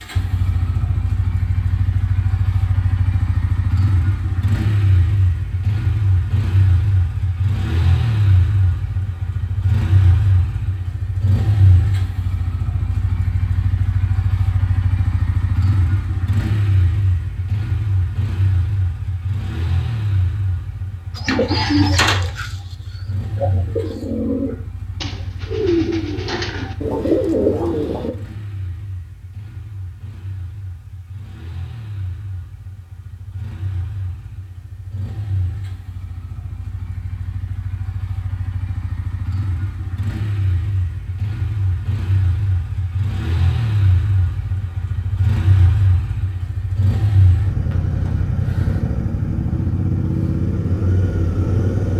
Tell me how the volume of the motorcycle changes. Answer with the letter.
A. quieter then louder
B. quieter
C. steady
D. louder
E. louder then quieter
A.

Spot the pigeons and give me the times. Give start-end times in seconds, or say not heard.
21.1-28.1.